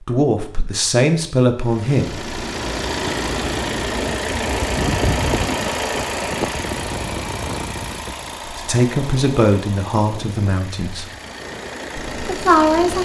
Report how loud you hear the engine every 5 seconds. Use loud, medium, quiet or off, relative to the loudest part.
loud, loud, medium.